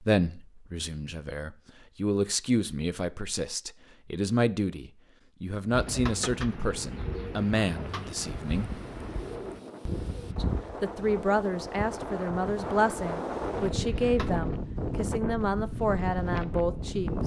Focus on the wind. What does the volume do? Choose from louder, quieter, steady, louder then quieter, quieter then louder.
louder.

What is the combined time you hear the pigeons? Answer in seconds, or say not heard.
9 s.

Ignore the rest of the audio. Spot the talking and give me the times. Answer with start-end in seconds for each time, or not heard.
0.0-8.8, 10.3-17.2.